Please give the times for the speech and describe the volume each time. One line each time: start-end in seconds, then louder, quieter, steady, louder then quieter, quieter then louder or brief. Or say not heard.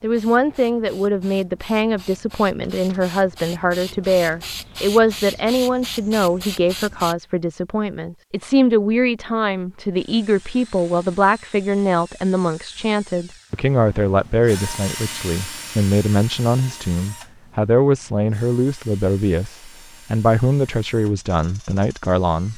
0.0-22.5 steady.